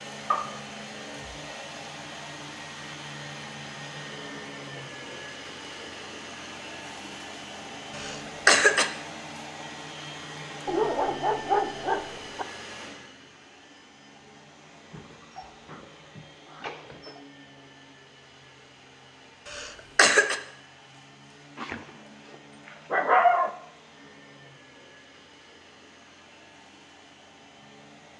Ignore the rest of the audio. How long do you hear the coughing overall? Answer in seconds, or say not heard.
2 s.